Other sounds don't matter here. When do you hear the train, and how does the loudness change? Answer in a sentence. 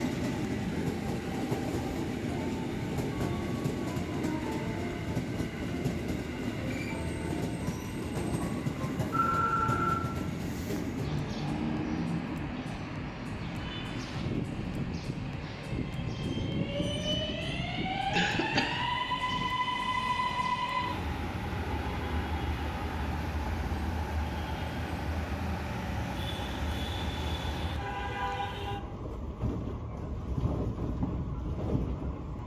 You can hear the train from 0.0 to 32.4 s, at a steady volume.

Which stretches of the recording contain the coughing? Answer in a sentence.
The coughing can be heard from 18.1 to 18.9 s.